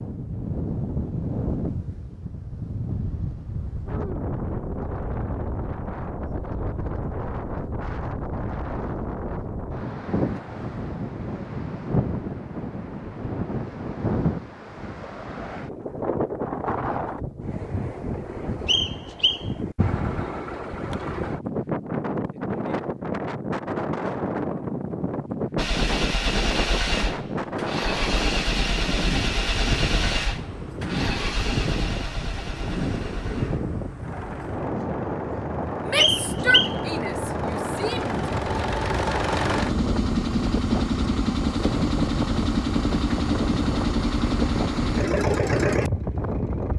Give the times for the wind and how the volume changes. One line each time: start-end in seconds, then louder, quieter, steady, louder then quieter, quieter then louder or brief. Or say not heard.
0.0-46.7 steady.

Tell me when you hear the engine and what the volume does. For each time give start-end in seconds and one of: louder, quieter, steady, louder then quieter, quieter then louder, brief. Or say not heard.
25.6-46.7 quieter then louder.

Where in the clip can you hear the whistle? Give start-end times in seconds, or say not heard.
18.6-19.4, 36.0-36.8.